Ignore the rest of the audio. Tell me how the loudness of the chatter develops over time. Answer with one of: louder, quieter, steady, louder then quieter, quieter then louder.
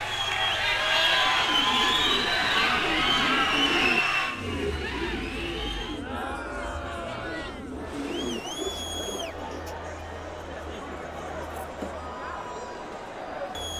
quieter.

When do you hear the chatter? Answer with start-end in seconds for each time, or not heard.
0.0-13.7.